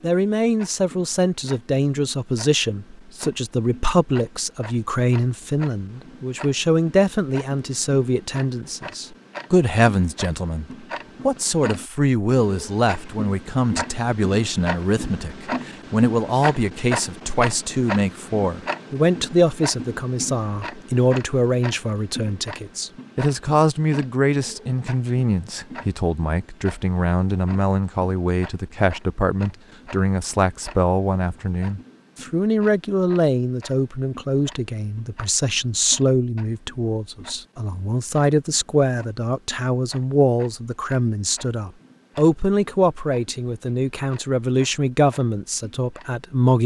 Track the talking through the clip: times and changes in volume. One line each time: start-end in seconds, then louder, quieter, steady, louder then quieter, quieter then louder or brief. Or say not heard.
0.0-46.6 steady.